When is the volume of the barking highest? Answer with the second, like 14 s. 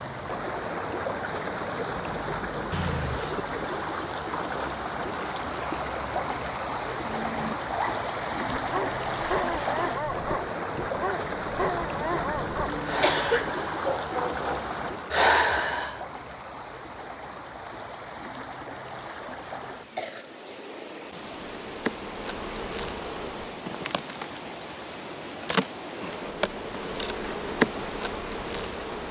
15 s.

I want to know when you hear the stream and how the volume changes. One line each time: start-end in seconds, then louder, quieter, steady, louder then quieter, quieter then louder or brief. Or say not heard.
0.0-29.0 quieter.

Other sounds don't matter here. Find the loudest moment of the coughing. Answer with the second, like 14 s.
13 s.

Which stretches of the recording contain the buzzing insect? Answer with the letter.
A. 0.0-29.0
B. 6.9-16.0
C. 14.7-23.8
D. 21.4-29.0
D.